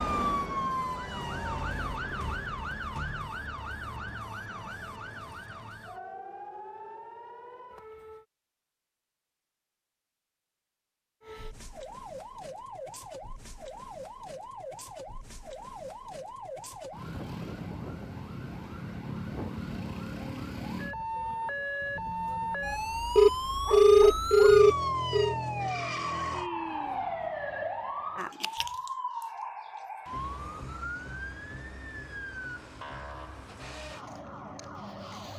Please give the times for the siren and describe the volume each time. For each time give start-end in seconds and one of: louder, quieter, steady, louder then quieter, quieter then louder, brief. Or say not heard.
0.0-8.2 quieter
11.2-35.3 louder then quieter.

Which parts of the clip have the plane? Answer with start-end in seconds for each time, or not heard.
not heard.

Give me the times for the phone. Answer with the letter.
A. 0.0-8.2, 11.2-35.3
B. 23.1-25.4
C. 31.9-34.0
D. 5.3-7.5
B.